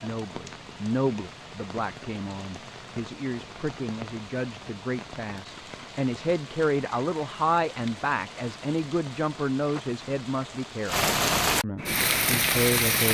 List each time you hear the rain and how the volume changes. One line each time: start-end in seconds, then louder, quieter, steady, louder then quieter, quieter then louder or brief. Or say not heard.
0.0-13.0 louder.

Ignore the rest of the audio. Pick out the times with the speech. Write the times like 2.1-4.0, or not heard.
0.0-13.0.